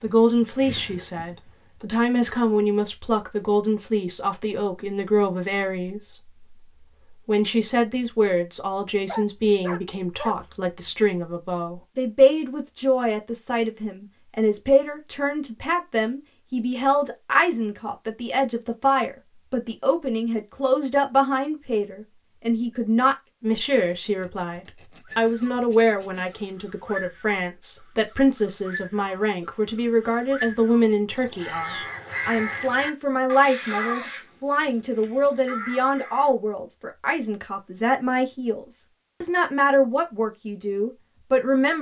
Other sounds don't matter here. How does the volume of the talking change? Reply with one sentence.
The volume of the talking stays about the same.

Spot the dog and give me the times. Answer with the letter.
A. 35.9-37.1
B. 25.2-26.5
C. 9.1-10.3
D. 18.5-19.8
C.